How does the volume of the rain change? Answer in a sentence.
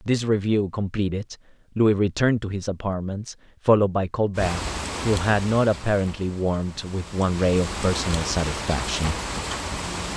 The loudness of the rain goes down, then up.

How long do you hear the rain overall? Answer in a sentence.
You can hear the rain for 6 seconds altogether.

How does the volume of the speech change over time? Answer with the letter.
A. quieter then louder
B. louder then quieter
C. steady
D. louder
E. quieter
C.